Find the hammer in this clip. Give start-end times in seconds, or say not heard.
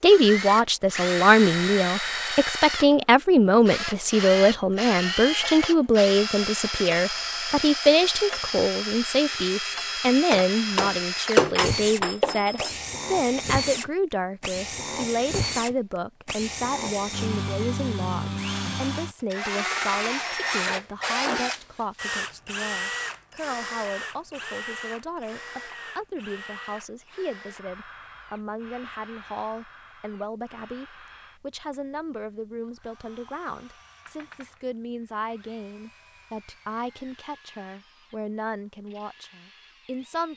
10.3-12.8.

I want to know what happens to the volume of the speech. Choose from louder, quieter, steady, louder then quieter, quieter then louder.
quieter.